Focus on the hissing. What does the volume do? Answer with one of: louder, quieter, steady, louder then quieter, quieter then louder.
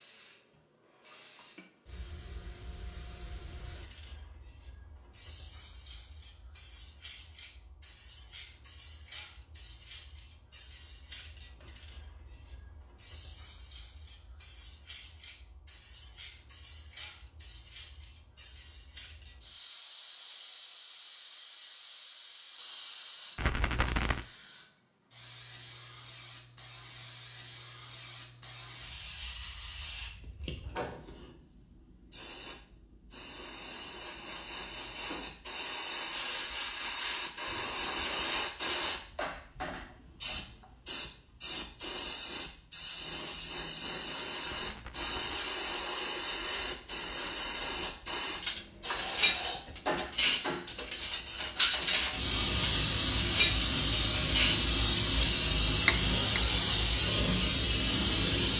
louder.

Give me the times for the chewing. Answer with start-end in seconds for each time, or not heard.
not heard.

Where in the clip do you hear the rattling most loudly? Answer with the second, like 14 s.
24 s.